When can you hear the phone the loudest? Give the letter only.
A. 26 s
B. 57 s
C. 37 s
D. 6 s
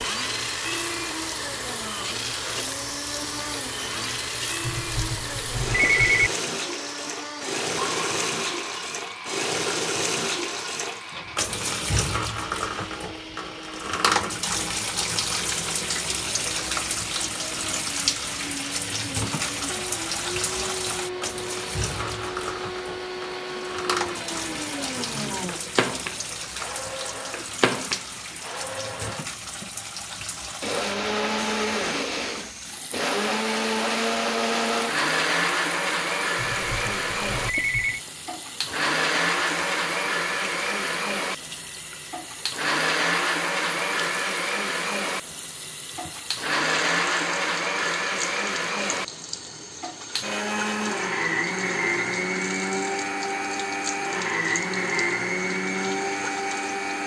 D.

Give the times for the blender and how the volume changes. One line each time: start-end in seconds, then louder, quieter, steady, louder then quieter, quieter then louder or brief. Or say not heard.
0.0-57.0 louder.